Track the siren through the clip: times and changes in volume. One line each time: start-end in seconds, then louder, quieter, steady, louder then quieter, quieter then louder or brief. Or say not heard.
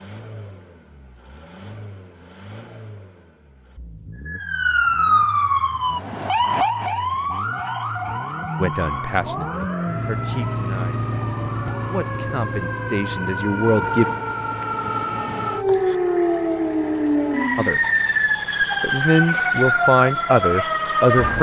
4.2-21.3 quieter then louder.